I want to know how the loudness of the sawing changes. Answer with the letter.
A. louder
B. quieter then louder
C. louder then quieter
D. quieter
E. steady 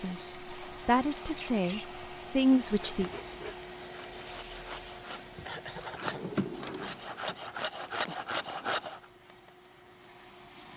A.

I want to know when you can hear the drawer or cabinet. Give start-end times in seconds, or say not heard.
6.0-7.4.